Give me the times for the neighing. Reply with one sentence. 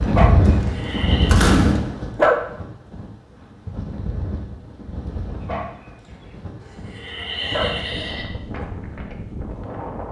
The neighing can be heard from 0.6 to 1.4 s and from 6.6 to 8.2 s.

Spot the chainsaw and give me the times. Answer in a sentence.
You can hear the chainsaw from 0.0 to 1.8 s.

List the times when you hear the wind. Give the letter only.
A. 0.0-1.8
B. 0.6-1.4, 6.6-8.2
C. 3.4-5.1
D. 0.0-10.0
D.